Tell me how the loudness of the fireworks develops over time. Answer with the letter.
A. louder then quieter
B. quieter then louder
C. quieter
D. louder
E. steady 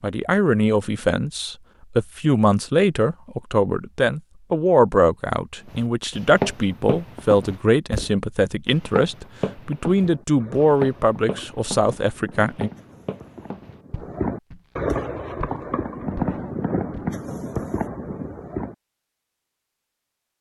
D.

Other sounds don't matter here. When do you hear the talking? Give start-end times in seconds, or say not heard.
0.0-12.7.